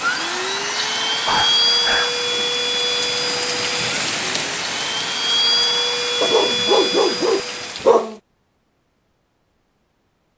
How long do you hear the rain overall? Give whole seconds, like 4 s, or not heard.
8 s.